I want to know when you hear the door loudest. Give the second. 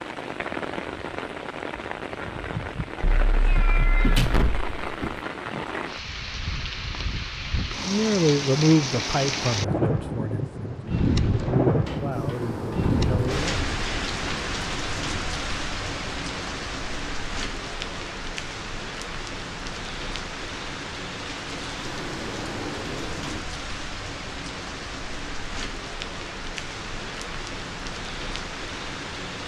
4 s.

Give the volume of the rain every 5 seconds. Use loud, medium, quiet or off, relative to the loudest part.
medium, loud, loud, medium, medium, medium.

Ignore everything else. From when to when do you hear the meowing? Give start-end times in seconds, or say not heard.
3.0-4.2.